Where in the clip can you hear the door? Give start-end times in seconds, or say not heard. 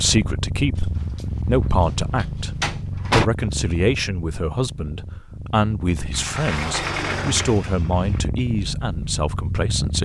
0.8-3.3, 6.1-8.2.